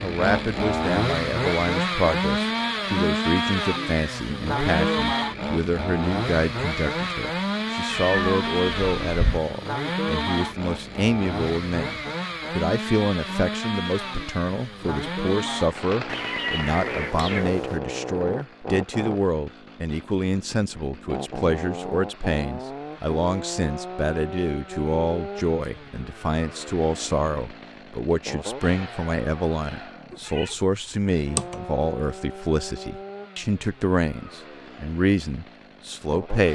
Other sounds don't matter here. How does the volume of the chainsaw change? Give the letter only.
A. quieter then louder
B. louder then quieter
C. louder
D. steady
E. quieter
E.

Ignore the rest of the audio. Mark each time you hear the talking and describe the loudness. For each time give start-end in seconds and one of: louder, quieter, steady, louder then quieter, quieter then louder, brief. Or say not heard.
0.0-36.5 steady.